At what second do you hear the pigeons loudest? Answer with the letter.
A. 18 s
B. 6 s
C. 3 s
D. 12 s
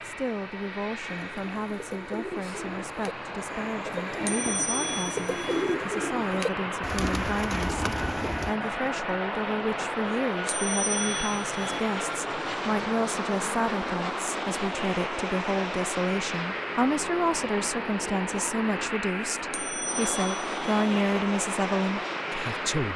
B.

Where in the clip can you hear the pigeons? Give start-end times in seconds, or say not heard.
1.1-8.6.